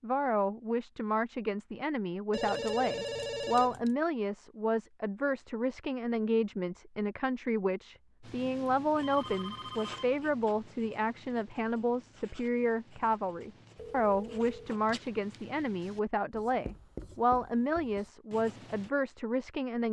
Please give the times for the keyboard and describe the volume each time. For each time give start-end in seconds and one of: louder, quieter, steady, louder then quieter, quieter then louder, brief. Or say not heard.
not heard.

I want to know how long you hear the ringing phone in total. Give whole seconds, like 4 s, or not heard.
4 s.